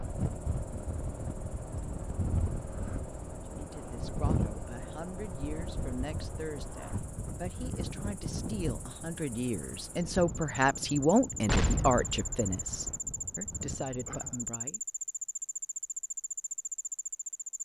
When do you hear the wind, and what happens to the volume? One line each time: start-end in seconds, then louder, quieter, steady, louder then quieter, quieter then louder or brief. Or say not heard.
0.0-14.6 quieter.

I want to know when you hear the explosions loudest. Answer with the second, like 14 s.
12 s.